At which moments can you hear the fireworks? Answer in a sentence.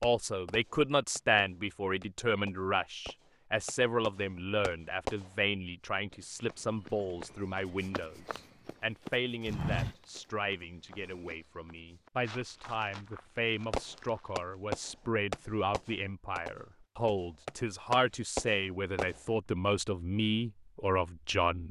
The fireworks can be heard from 0.0 to 5.3 s and from 13.7 to 19.2 s.